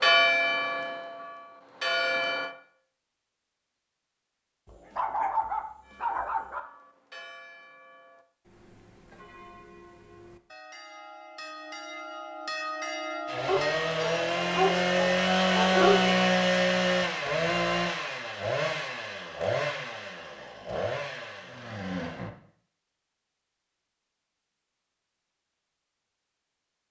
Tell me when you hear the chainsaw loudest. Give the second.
16 s.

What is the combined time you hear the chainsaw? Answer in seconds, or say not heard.
9 s.